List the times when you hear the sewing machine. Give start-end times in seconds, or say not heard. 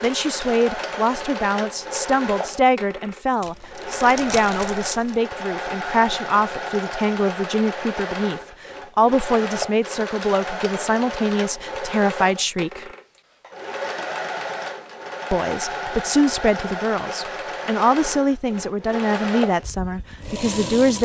0.0-21.0.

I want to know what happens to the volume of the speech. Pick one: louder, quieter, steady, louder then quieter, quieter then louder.
steady.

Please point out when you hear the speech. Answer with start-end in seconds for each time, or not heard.
0.0-12.8, 15.3-21.0.